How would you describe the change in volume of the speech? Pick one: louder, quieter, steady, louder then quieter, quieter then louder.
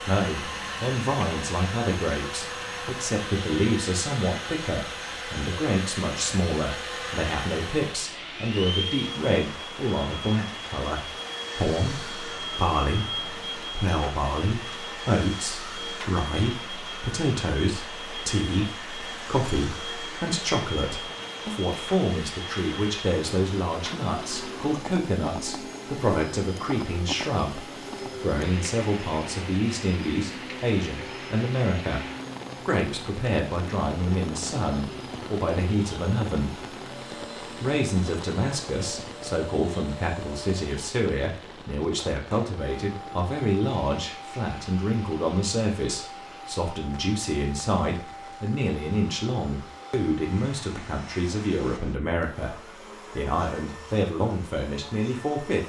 steady.